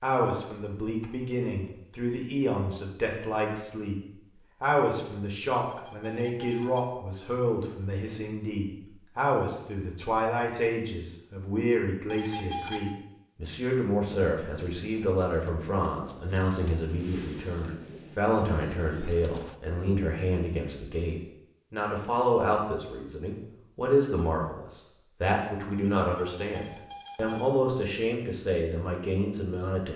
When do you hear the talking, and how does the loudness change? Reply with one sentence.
You can hear the talking from 0.0 to 29.9 s, at a steady volume.